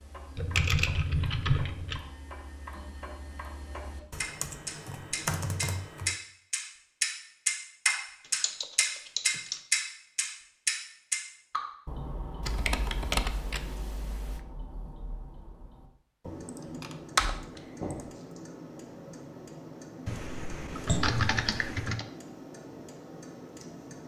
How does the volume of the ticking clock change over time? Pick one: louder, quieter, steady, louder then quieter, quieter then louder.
louder then quieter.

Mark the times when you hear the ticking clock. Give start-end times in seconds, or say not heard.
0.0-24.0.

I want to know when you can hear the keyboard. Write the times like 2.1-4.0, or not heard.
0.3-2.0, 4.1-6.2, 8.3-9.6, 12.4-14.4, 16.2-18.1, 20.1-22.1.